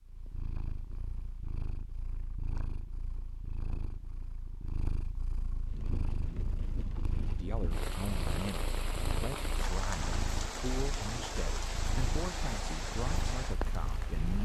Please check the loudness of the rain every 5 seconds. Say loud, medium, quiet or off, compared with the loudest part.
off, loud, loud.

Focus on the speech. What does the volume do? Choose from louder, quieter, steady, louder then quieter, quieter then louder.
steady.